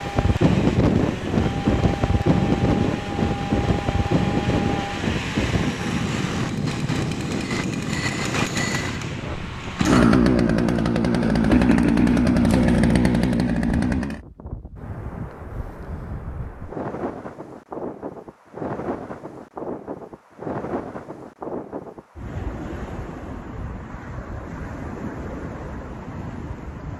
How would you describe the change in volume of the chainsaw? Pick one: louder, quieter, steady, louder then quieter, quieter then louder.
louder.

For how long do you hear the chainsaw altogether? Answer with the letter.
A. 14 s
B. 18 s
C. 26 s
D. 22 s
A.